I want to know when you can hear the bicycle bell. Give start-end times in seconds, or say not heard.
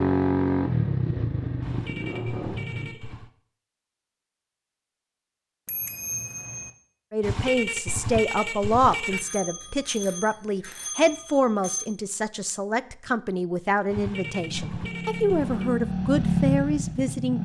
5.7-6.7, 9.1-11.8.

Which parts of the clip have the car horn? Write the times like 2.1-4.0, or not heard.
1.6-3.3, 7.2-9.2, 13.9-15.7.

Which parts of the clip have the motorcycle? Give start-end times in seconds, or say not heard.
0.0-3.0, 14.1-17.4.